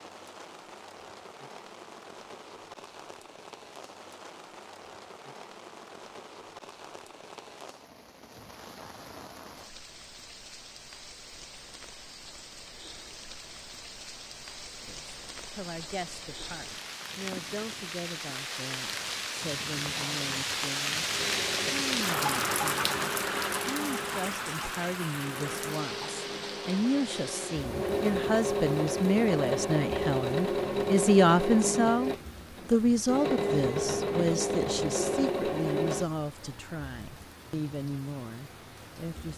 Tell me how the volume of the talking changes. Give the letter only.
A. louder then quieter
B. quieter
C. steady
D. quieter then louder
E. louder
A.